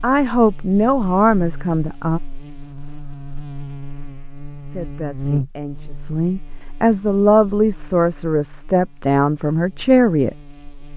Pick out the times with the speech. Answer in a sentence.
The speech can be heard from 0.0 to 2.2 s and from 4.7 to 10.3 s.